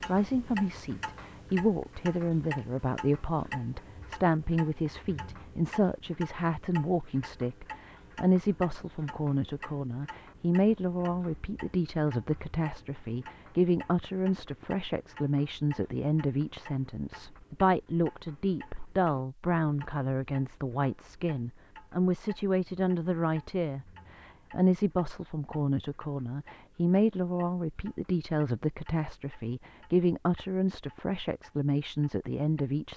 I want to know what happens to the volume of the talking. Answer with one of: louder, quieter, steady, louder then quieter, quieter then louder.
steady.